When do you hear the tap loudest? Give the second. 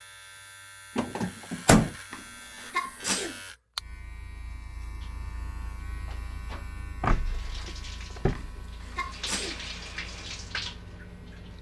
10 s.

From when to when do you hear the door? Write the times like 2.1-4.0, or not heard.
0.9-1.9, 7.0-8.7.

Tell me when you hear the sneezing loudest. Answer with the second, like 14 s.
3 s.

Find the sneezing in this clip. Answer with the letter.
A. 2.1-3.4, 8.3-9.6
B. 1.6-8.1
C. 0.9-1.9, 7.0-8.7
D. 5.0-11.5
A.